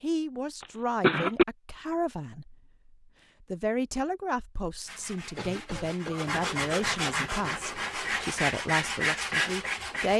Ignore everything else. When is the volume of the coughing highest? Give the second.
1 s.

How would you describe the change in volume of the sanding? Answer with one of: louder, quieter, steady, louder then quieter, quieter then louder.
louder.